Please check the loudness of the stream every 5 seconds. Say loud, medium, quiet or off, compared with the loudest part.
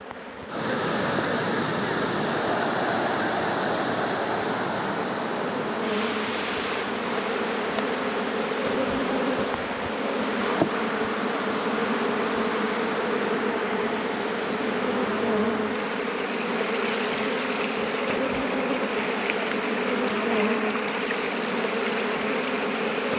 loud, medium, medium, medium, medium.